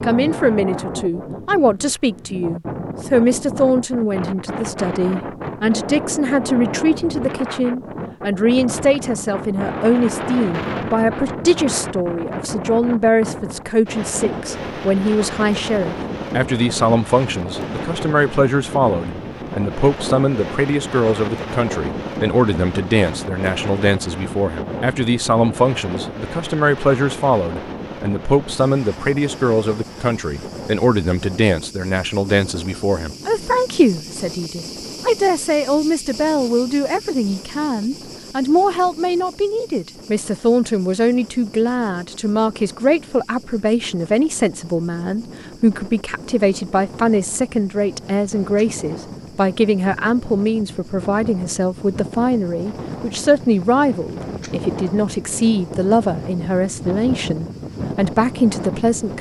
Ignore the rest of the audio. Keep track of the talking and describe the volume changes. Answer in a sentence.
The volume of the talking stays about the same.